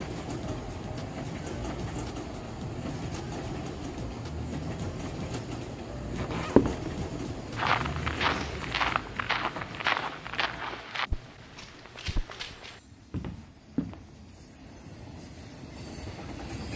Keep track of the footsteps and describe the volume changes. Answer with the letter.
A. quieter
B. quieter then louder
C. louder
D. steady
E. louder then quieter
A.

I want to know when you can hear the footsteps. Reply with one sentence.
The footsteps can be heard from 6.1 to 14.1 s.